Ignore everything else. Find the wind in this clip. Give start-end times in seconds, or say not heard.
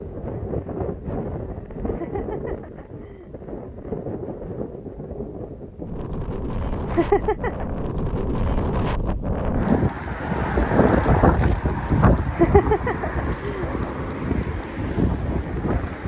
0.0-16.0.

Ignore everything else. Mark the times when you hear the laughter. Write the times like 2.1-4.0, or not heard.
1.9-3.3, 6.8-7.7, 12.3-13.7.